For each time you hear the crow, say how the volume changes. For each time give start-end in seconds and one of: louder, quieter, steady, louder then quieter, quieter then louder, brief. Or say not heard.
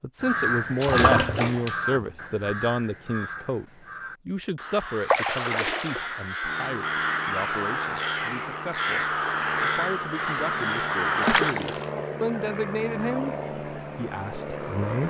0.2-11.6 quieter then louder.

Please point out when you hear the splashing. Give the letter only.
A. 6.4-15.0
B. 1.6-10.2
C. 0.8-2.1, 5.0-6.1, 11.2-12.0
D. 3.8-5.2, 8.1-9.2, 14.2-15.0
C.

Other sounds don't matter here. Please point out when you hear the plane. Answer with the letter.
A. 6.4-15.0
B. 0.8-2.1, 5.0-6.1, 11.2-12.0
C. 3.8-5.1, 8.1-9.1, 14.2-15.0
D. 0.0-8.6
A.